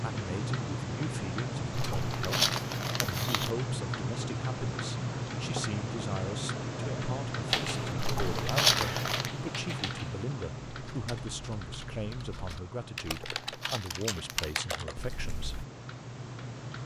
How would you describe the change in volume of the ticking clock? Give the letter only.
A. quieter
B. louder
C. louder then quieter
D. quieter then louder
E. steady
A.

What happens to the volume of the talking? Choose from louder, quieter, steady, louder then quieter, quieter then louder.
steady.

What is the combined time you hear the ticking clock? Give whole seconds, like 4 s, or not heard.
17 s.